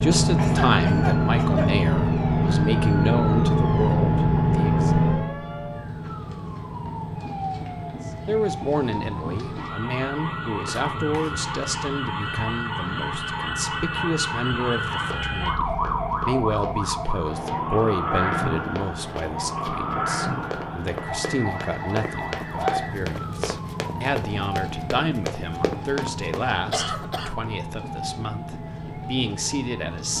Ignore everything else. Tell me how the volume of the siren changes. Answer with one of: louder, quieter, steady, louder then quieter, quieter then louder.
louder then quieter.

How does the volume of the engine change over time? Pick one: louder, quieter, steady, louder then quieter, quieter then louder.
quieter.